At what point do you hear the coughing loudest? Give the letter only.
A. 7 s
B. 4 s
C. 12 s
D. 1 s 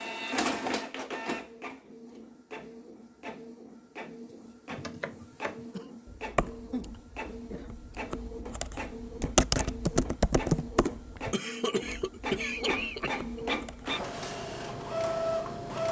C.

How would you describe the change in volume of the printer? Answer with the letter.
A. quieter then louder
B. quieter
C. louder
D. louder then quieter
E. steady
A.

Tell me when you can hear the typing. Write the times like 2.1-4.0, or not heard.
4.7-13.9.